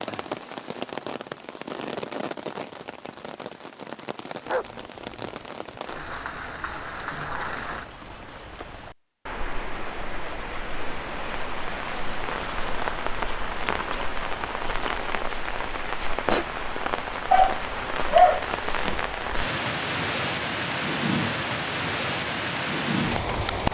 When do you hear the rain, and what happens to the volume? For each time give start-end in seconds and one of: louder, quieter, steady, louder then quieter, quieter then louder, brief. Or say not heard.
0.0-23.6 louder.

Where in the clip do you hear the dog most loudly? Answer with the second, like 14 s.
18 s.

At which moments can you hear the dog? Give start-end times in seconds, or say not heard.
4.5-5.8, 17.3-19.0.